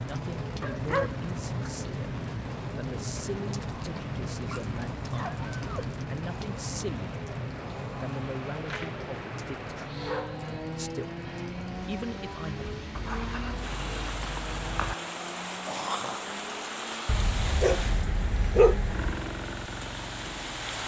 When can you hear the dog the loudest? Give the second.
19 s.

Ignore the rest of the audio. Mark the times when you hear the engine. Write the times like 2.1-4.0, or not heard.
0.0-17.1, 18.9-20.8.